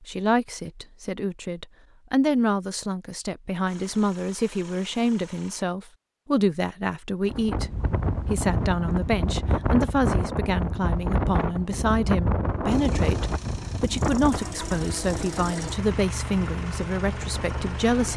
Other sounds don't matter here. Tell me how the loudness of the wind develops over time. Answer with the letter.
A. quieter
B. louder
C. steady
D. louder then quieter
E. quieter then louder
A.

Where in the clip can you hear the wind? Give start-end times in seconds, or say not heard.
7.2-18.1.